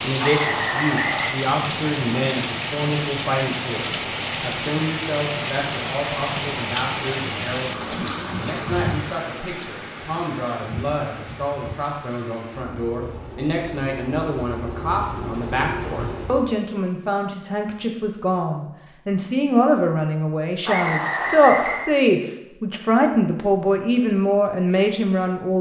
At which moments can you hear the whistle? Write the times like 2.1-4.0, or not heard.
0.2-1.4, 20.6-21.9.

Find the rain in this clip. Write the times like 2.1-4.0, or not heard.
0.0-16.6.